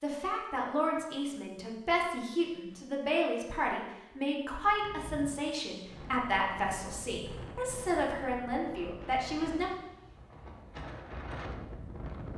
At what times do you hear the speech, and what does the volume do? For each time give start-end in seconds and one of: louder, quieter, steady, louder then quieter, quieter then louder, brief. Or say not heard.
0.0-9.7 steady.